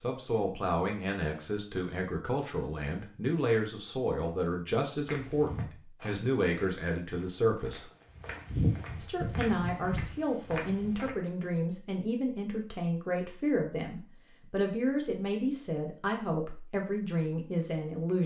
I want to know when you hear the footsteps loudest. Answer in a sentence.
The loudest moment of the footsteps is at 9 seconds.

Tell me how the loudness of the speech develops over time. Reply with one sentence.
The volume of the speech stays about the same.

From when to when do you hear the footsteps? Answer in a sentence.
The footsteps can be heard from 5.0 to 11.1 s.